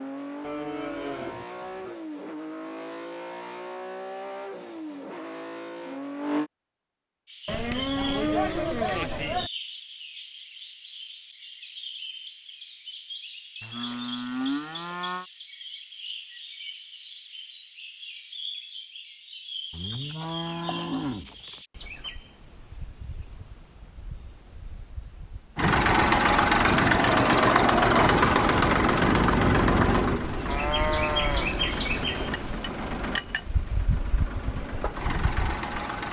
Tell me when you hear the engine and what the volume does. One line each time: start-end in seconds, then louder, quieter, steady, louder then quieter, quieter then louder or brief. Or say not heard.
0.0-6.5 steady
25.6-36.0 quieter.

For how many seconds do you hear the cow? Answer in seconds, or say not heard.
10 s.